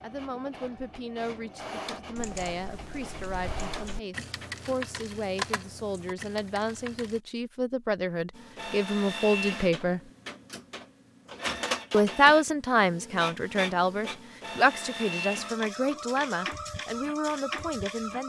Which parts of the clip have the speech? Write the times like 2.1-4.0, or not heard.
0.0-10.0, 11.9-18.2.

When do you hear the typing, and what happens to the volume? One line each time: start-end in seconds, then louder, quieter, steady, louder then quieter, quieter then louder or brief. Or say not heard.
2.1-7.2 louder then quieter.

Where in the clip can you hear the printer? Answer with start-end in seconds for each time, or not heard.
0.0-4.7, 8.3-18.2.